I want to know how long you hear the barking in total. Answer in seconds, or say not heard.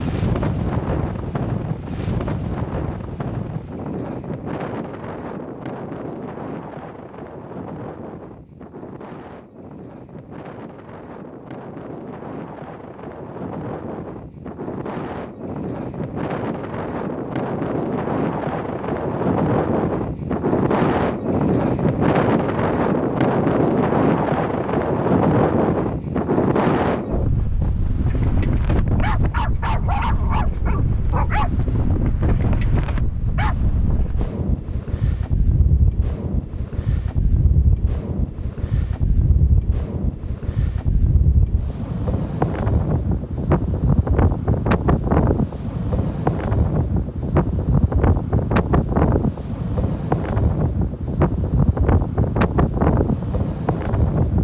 6 s.